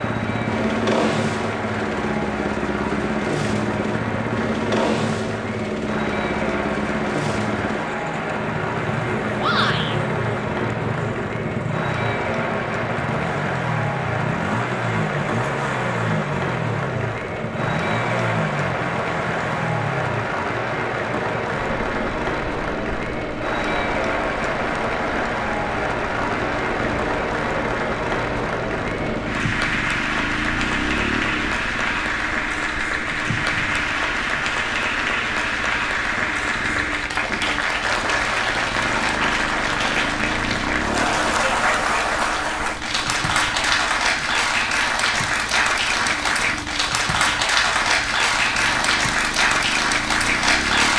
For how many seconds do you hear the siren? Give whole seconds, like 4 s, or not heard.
not heard.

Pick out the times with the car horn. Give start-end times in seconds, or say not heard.
not heard.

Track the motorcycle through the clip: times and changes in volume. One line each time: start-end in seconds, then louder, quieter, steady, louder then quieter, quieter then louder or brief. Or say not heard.
0.0-50.9 quieter.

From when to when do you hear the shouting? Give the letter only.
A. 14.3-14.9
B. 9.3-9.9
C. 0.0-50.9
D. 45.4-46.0
B.